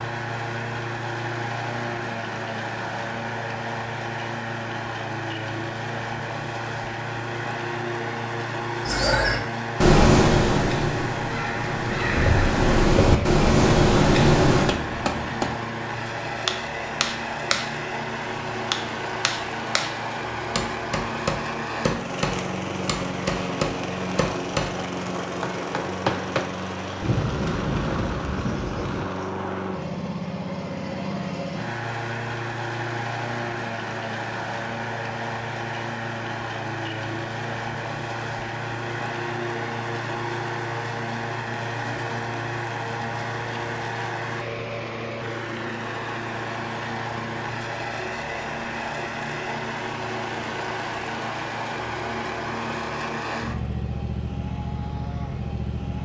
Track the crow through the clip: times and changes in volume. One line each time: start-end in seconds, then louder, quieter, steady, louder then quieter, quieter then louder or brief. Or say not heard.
8.8-14.8 quieter then louder.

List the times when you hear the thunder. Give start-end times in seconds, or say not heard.
27.0-29.1.